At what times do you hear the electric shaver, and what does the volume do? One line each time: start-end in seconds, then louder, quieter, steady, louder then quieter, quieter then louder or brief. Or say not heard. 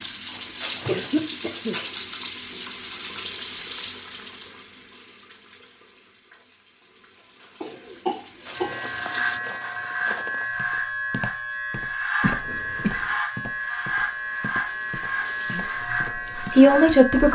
8.6-17.2 steady.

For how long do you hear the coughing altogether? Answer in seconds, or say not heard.
4 s.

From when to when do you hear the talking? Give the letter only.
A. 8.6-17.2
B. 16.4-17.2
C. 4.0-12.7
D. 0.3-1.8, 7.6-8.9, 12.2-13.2
B.